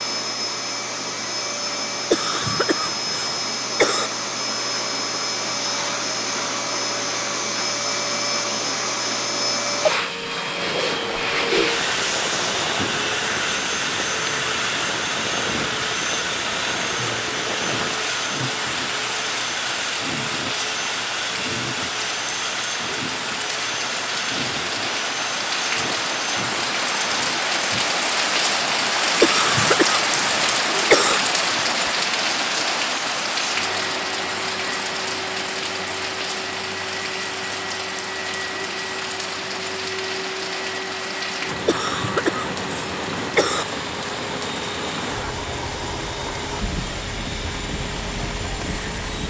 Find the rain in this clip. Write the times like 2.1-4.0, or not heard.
10.4-49.2.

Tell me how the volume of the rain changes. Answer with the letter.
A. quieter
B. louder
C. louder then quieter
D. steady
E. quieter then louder
C.